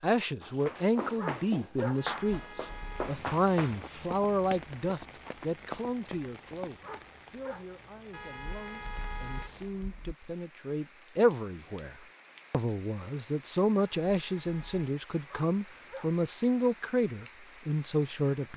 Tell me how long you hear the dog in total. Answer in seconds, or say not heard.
3 s.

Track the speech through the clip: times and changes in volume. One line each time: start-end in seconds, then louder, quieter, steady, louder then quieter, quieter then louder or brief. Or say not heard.
0.0-18.5 quieter then louder.